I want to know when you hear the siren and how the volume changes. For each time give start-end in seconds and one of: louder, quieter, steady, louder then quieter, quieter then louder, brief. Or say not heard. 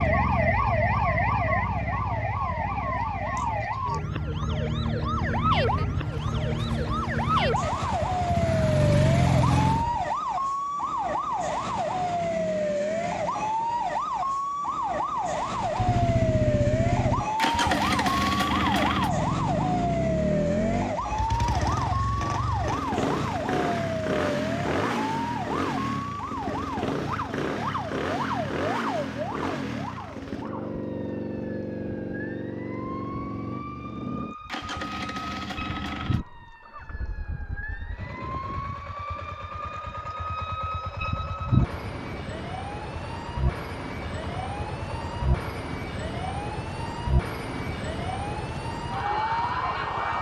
0.0-50.1 quieter then louder.